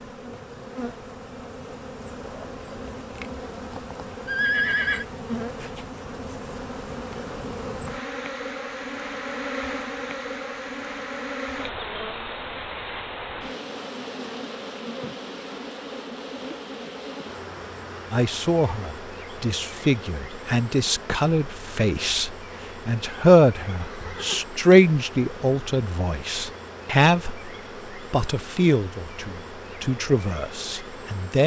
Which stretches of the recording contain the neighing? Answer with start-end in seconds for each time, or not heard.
4.2-5.0, 23.8-24.4.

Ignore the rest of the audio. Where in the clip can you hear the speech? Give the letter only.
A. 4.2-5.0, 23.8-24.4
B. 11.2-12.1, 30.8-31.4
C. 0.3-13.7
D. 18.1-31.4
D.